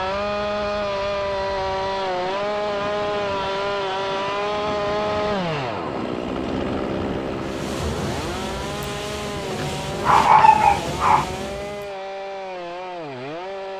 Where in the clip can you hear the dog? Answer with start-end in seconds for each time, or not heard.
9.4-11.2.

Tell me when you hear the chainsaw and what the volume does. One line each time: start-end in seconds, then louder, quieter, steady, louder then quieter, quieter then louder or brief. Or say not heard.
0.0-13.7 quieter.